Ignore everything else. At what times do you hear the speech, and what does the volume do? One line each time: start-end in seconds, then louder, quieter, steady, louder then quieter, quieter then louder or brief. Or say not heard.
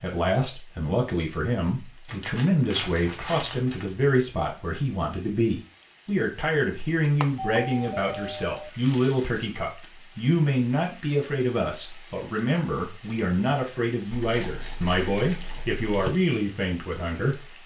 0.0-17.6 steady.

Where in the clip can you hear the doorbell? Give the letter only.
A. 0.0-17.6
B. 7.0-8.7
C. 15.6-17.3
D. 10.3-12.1
B.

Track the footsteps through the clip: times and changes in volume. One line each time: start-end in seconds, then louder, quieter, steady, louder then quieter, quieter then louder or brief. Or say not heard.
not heard.